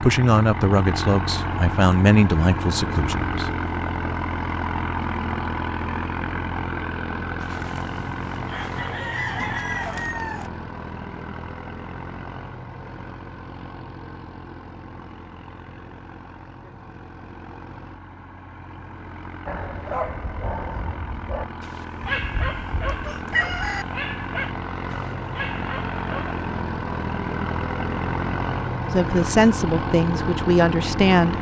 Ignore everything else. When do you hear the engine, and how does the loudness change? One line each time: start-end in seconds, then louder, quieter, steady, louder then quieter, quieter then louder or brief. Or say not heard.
0.0-31.3 quieter then louder.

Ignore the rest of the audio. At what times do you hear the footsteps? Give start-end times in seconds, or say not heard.
not heard.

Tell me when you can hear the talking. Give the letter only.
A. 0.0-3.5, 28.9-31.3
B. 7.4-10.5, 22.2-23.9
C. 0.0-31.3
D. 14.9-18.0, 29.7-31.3
A.